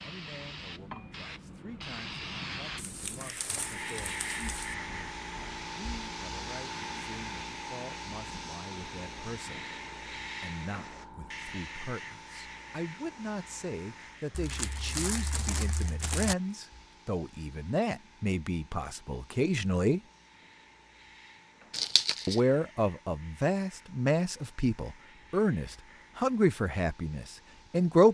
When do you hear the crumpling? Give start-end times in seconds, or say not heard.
2.8-4.8, 14.3-16.4, 21.7-22.4.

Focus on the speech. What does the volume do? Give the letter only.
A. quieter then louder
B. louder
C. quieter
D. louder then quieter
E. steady
B.